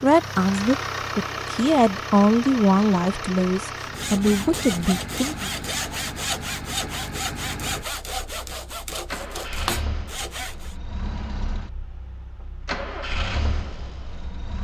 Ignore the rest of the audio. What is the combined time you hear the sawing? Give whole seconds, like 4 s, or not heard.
7 s.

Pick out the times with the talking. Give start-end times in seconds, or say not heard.
0.0-5.5.